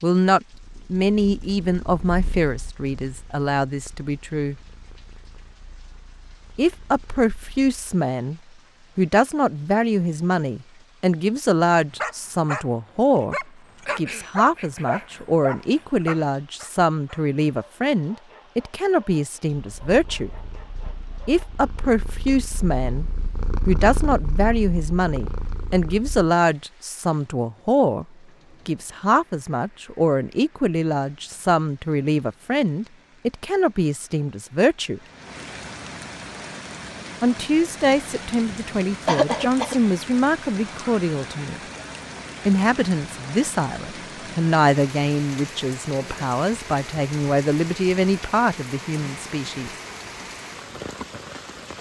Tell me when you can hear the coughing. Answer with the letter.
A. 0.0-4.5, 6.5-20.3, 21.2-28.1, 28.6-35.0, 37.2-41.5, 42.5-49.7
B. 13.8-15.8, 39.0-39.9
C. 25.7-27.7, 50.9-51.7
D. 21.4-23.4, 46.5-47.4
B.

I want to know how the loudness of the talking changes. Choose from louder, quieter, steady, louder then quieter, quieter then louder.
steady.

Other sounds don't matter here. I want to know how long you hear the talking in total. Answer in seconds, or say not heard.
43 s.